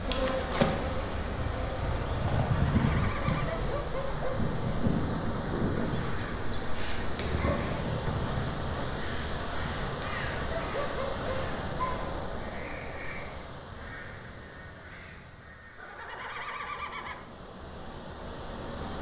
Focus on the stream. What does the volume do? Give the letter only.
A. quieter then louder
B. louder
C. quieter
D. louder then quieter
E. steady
C.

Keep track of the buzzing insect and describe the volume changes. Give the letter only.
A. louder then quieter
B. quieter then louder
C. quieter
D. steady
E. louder
C.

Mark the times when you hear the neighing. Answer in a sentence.
You can hear the neighing from 2.5 to 3.6 s and from 15.8 to 17.2 s.